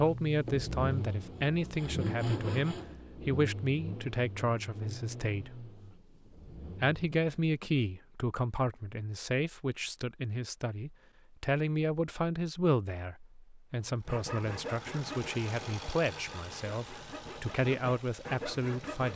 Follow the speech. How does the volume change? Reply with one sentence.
The volume of the speech stays about the same.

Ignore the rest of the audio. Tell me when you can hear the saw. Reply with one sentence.
You can hear the saw from 0.2 to 3.0 s and from 13.8 to 19.1 s.